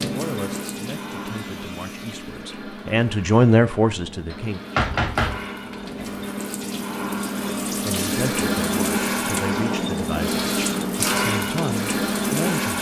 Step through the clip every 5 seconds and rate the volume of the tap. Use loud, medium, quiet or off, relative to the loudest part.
medium, loud, loud.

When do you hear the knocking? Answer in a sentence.
You can hear the knocking from 4.3 to 6.1 s.